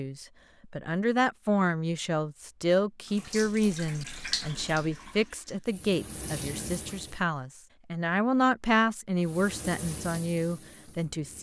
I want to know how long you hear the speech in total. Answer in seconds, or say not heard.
11 s.